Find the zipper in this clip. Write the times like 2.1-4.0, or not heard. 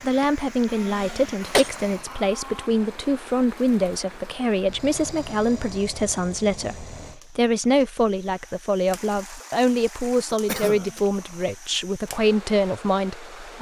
not heard.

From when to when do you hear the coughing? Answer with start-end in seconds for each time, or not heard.
0.2-1.7, 10.3-11.0.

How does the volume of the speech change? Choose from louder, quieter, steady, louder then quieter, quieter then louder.
steady.